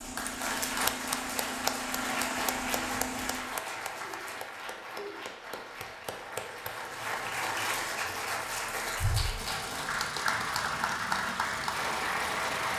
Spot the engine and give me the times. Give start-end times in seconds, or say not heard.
0.0-3.4, 9.3-12.7.